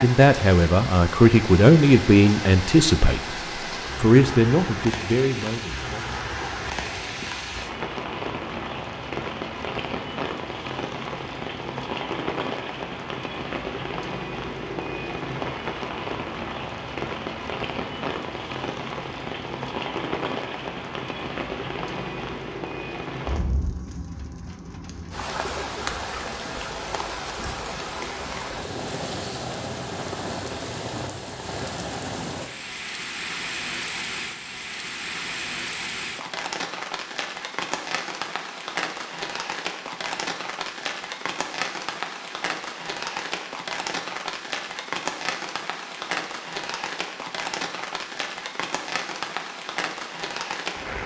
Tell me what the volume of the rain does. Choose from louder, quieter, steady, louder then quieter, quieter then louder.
steady.